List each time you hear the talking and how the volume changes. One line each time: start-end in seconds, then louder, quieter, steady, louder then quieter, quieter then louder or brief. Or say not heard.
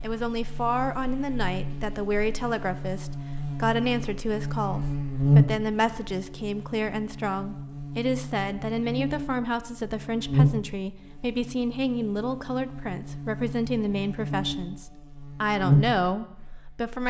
0.0-17.0 steady.